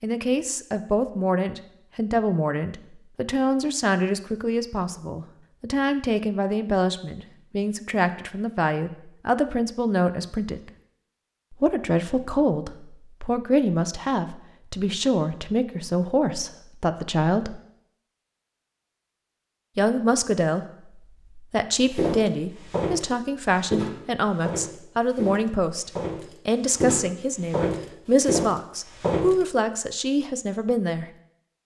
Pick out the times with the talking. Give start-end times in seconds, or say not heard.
0.0-10.7, 11.5-17.6, 19.8-20.6, 21.4-31.1.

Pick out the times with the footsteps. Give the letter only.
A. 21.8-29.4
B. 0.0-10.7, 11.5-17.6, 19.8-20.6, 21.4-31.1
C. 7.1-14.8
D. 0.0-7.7
A.